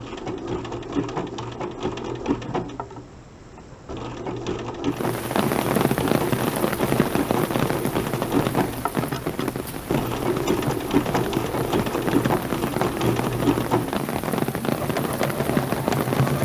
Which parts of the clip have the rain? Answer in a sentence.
You can hear the rain from 4.9 to 16.4 s.